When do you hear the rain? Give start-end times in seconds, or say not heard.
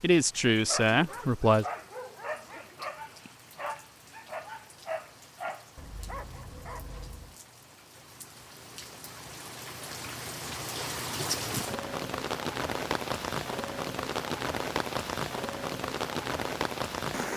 0.0-17.3.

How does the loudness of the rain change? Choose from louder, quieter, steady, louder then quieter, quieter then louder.
louder.